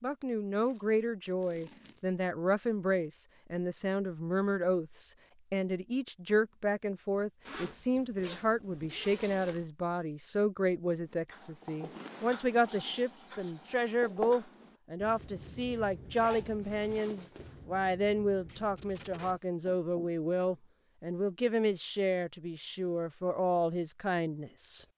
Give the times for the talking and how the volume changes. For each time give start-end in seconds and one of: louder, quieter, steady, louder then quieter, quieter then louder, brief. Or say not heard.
0.0-24.9 steady.